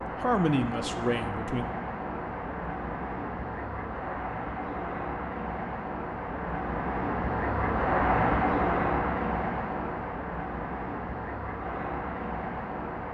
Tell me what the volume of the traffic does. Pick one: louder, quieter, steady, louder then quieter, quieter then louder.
louder then quieter.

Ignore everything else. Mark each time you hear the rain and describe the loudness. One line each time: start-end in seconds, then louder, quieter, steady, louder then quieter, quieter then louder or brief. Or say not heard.
not heard.